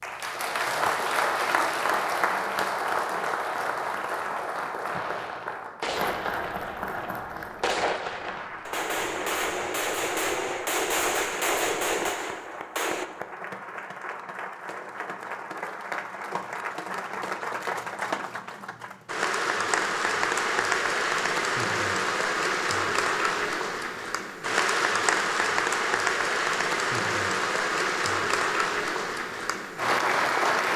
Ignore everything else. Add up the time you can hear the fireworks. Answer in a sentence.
You can hear the fireworks for 8 seconds altogether.